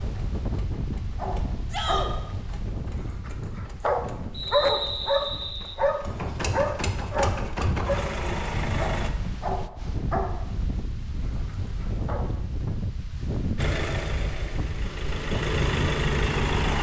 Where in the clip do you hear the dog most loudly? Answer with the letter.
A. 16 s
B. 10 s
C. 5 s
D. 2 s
C.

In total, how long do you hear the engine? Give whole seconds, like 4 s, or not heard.
12 s.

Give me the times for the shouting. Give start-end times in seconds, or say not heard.
1.7-2.1.